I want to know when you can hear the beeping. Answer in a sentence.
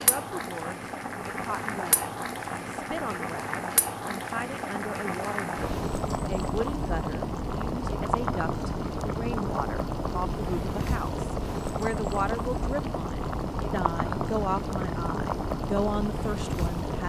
The beeping can't be heard in this clip.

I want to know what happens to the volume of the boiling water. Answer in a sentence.
The volume of the boiling water stays about the same.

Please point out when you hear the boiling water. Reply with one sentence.
The boiling water can be heard from 0.0 to 17.0 s.